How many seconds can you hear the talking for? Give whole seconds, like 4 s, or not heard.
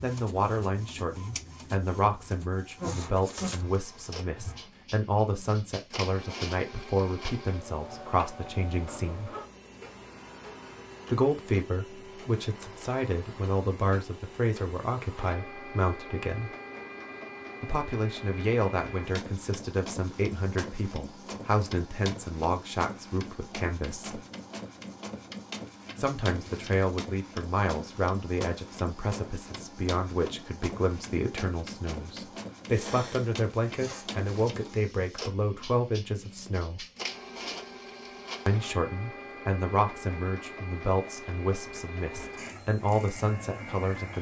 38 s.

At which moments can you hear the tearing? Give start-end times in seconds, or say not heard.
not heard.